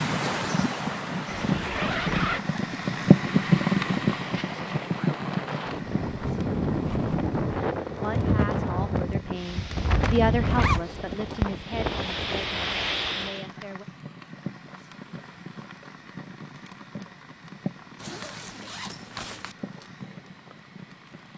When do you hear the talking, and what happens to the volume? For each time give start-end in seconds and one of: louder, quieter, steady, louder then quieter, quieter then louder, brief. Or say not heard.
7.8-13.8 louder then quieter.